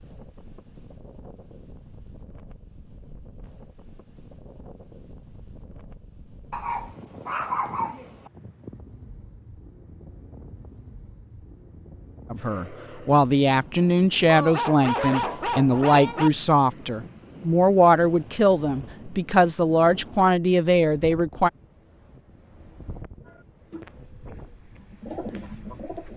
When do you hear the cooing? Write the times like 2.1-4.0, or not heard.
23.2-26.1.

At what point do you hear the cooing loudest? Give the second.
25 s.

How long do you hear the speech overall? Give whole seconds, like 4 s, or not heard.
9 s.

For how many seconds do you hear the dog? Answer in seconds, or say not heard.
4 s.